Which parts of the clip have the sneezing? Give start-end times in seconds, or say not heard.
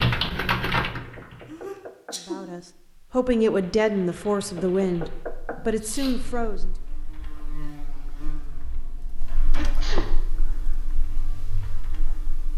1.4-2.4, 5.5-6.2, 9.3-10.1.